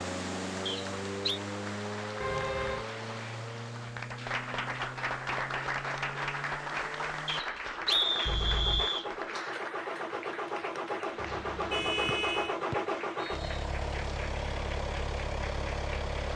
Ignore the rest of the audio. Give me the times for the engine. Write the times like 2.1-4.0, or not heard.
0.0-16.3.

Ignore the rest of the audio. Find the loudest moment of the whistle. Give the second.
8 s.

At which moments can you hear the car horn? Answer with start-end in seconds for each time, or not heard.
2.2-2.9, 8.2-8.9, 11.2-12.6.